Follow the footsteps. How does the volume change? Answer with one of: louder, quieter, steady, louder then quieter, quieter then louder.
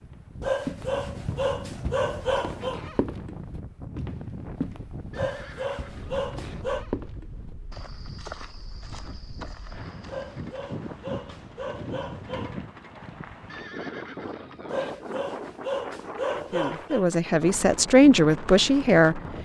quieter.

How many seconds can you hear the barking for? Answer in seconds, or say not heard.
9 s.